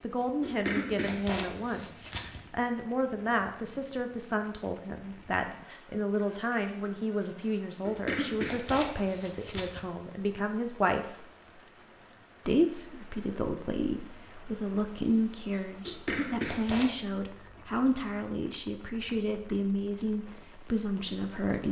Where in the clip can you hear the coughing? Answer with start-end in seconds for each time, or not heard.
0.4-2.5, 7.8-9.8, 15.8-16.9.